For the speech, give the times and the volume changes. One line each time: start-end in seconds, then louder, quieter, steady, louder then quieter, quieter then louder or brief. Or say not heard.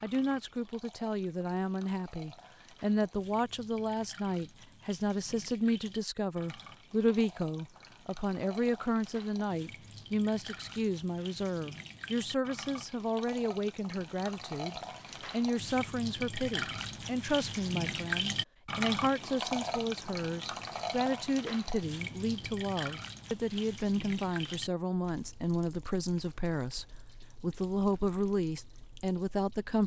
0.0-29.8 steady.